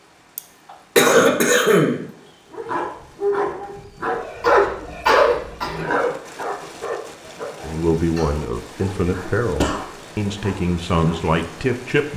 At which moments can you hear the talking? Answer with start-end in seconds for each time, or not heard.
7.6-12.1.